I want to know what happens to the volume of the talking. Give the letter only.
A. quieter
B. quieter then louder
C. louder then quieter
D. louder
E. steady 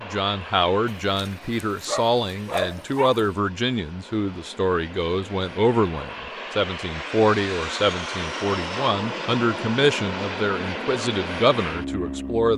E.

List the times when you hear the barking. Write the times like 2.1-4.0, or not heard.
0.8-3.4.